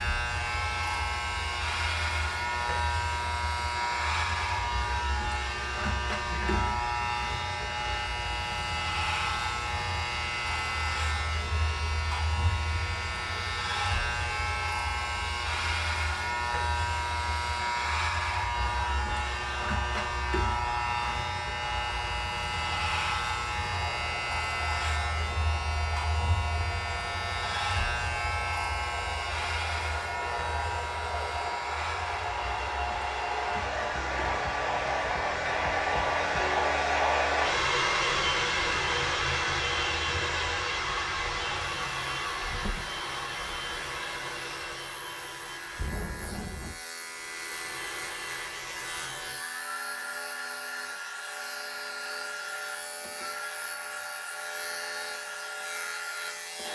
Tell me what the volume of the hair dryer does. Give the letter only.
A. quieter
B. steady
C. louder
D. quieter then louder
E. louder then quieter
E.